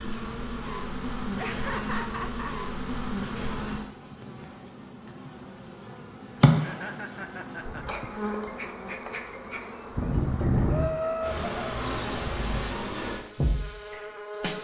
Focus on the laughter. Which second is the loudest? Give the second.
11 s.